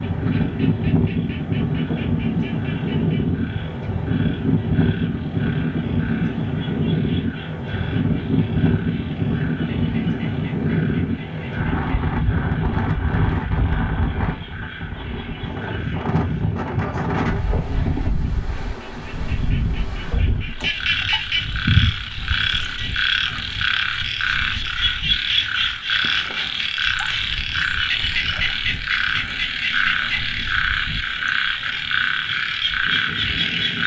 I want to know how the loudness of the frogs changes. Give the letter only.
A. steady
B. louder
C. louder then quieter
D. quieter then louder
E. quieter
B.